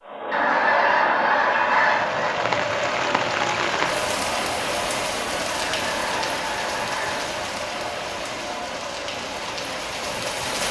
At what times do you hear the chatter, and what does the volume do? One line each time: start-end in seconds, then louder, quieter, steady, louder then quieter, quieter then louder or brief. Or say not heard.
0.0-10.3 quieter.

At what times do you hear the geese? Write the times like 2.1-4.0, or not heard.
0.3-2.3, 5.7-7.2.